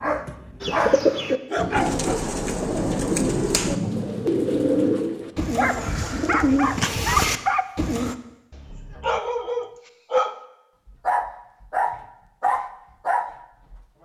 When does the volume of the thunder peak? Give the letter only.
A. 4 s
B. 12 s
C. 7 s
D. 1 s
A.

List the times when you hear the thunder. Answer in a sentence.
You can hear the thunder from 1.6 to 5.1 s.